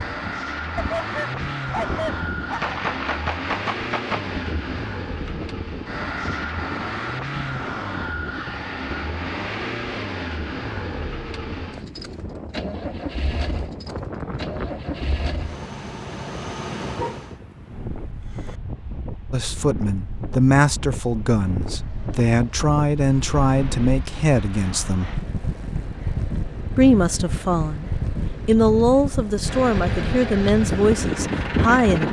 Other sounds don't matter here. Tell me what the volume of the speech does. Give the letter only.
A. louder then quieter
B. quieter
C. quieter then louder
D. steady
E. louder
D.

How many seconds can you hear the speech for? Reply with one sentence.
You can hear the speech for 11 seconds altogether.